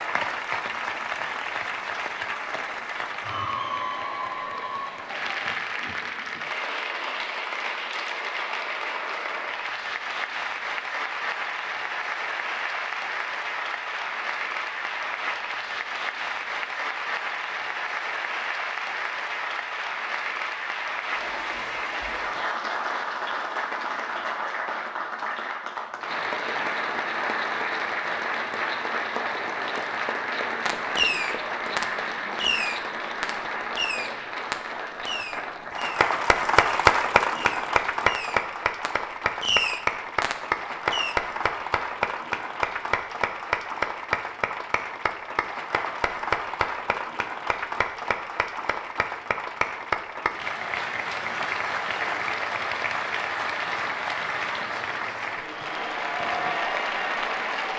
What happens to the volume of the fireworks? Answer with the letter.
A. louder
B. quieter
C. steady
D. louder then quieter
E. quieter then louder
E.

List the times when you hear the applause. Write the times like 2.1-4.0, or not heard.
0.0-57.7.